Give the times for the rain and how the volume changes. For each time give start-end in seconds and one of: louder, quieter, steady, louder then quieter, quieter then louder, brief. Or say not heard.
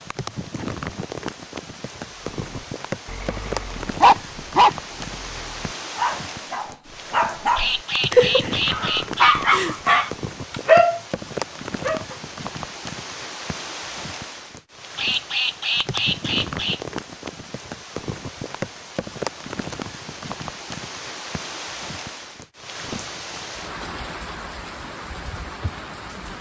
0.0-26.3 steady.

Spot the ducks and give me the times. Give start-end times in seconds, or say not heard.
7.5-9.4, 14.9-16.8.